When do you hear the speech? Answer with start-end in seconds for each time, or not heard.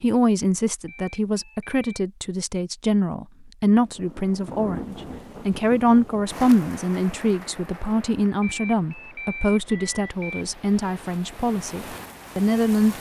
0.0-12.9.